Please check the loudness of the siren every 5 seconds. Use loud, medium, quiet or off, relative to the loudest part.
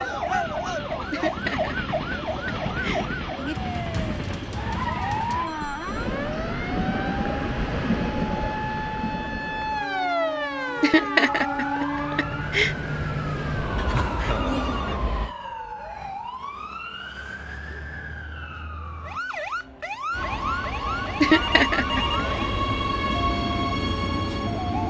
loud, loud, loud, medium, loud.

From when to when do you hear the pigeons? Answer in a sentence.
The pigeons can't be heard in this clip.